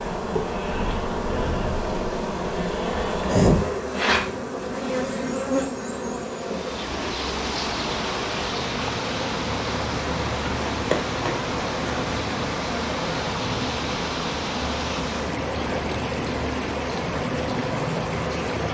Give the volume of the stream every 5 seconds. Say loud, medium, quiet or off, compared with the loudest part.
off, loud, loud, loud.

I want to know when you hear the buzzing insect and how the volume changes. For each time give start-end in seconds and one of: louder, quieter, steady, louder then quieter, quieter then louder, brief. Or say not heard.
0.0-18.7 quieter.